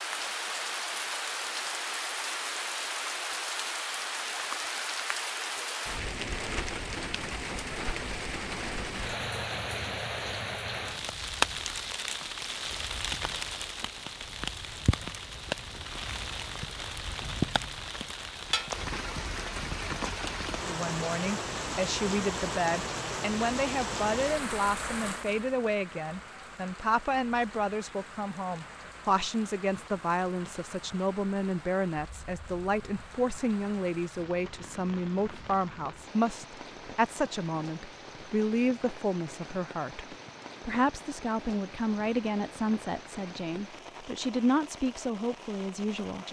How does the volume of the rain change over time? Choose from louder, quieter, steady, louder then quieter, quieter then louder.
quieter.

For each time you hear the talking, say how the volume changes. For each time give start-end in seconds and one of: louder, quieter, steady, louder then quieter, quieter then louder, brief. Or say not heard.
20.6-46.2 steady.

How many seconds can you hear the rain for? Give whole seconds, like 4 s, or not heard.
46 s.